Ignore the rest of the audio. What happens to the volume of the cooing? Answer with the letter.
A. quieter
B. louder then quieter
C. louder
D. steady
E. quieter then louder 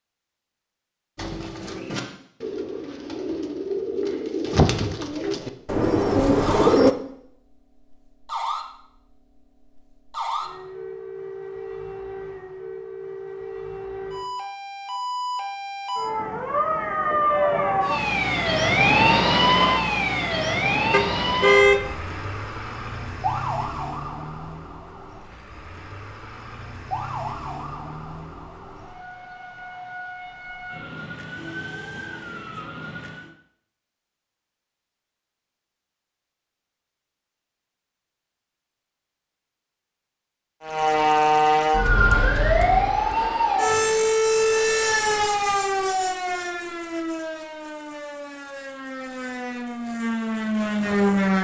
C.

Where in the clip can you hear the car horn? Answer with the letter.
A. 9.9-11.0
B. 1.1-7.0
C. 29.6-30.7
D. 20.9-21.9
D.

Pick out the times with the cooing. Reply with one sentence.
You can hear the cooing from 1.1 to 7.0 s.